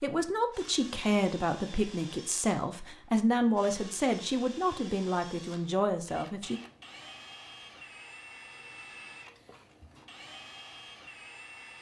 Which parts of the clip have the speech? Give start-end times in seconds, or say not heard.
0.0-6.6.